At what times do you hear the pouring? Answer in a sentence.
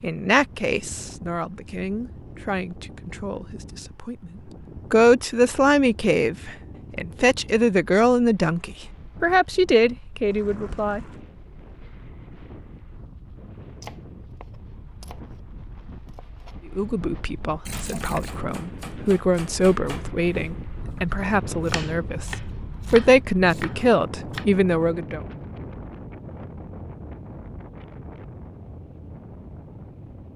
You can hear the pouring from 10.3 to 11.2 s and from 17.6 to 18.4 s.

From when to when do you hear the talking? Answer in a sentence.
You can hear the talking from 0.0 to 4.3 s, from 4.9 to 11.0 s and from 16.8 to 25.2 s.